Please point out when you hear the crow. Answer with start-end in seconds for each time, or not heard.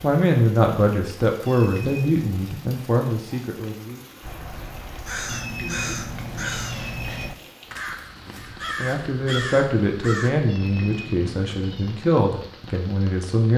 4.2-10.3.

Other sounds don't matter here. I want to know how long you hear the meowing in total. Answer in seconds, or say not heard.
4 s.